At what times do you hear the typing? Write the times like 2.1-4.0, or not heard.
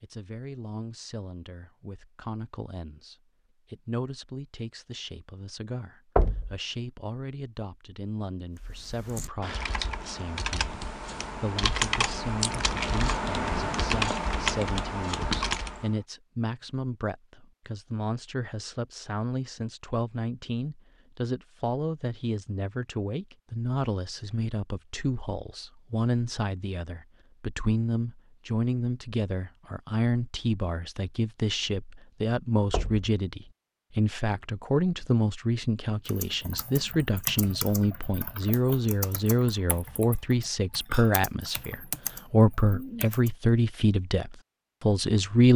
8.6-15.9, 36.0-43.3.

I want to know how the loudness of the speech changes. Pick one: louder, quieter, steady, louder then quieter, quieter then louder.
louder.